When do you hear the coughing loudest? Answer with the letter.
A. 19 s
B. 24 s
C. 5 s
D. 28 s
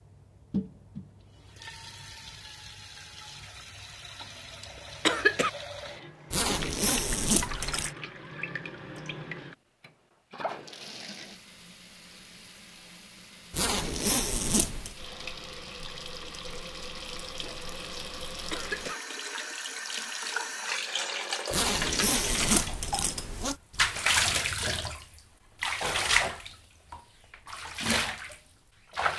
C.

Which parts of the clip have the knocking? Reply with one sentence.
You can't hear the knocking here.